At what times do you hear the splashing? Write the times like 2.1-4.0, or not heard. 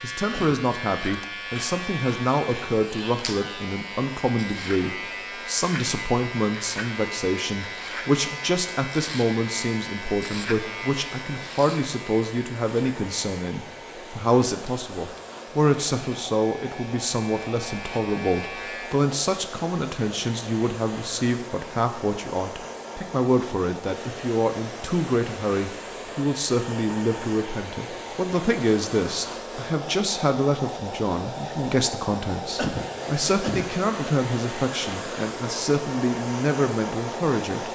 not heard.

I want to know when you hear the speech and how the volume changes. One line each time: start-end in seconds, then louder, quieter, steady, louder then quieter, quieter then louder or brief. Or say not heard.
0.0-37.6 steady.